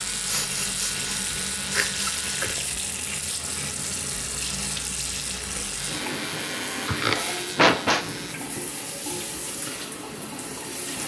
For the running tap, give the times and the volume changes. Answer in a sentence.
The running tap can be heard from 0.0 to 11.0 s, at a steady volume.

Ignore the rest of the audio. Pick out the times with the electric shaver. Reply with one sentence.
You can hear the electric shaver from 0.0 to 2.4 s and from 5.8 to 8.3 s.